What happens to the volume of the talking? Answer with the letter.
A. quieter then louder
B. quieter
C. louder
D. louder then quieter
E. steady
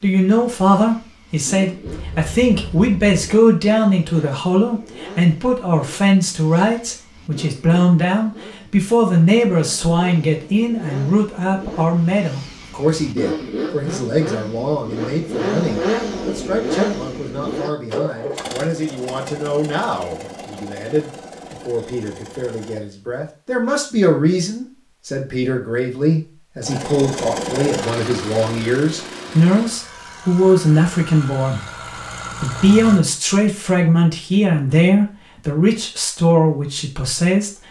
A.